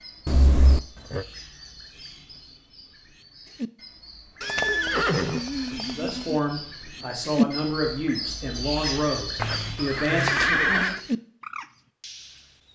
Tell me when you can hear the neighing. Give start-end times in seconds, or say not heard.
0.2-1.2, 4.4-6.4, 9.3-11.0.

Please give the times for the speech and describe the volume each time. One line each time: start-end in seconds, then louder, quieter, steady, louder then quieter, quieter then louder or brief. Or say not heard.
5.8-10.8 steady.